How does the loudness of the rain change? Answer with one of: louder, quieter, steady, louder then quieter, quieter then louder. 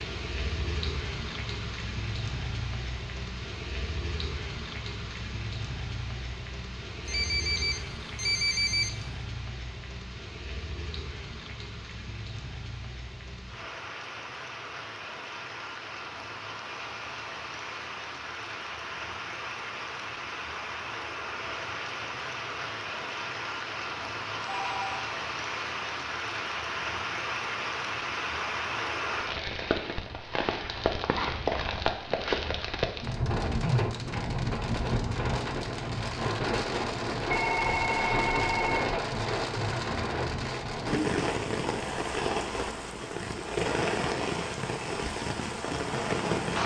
louder.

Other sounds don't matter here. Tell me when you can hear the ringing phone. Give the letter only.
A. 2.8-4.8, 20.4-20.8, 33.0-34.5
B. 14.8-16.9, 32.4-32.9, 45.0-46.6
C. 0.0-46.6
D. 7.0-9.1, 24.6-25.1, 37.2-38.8
D.